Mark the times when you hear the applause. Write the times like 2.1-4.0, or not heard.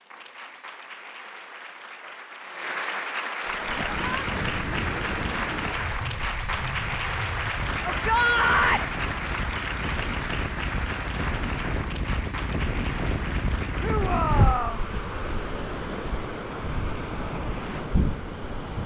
0.0-14.7.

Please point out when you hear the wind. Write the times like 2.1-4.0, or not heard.
3.4-18.8.